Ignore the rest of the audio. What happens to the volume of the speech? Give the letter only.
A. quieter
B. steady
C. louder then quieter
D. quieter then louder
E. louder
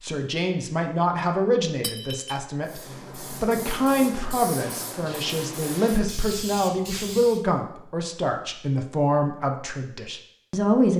B.